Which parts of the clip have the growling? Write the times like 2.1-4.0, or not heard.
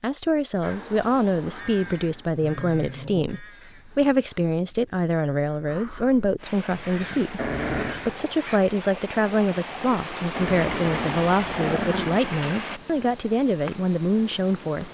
1.8-3.4, 7.3-8.0, 10.3-12.2.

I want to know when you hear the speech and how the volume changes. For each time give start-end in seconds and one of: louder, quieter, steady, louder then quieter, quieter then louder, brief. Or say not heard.
0.0-14.9 steady.